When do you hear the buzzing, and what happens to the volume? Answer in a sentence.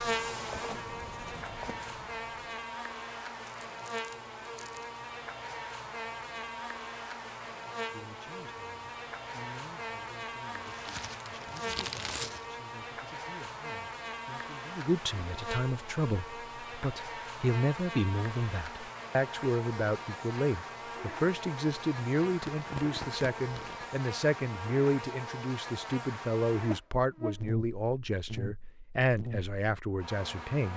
You can hear the buzzing from 0.0 to 30.7 s, at a steady volume.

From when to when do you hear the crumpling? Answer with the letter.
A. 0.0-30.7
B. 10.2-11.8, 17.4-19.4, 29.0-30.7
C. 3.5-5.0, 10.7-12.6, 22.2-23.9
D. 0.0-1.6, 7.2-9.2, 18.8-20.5
C.